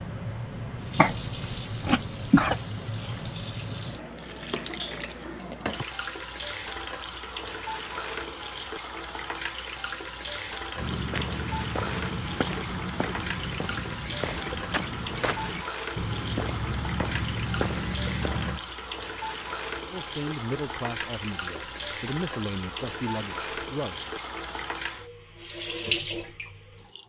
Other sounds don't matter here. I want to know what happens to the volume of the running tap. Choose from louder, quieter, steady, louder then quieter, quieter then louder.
steady.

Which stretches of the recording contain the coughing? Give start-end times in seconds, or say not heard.
0.9-2.5.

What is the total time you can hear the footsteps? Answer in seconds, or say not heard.
8 s.